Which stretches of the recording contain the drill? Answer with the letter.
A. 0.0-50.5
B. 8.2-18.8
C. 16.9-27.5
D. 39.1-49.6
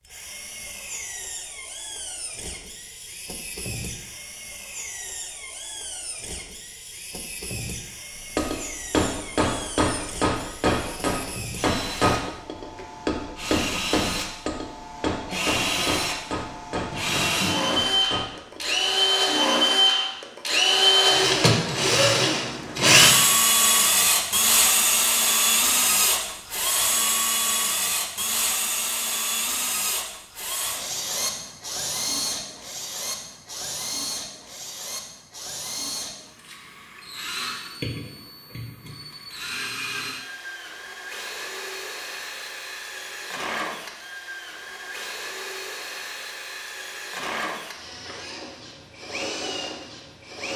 A.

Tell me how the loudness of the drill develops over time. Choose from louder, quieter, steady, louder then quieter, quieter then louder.
louder then quieter.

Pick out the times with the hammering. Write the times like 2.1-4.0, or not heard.
8.2-18.8.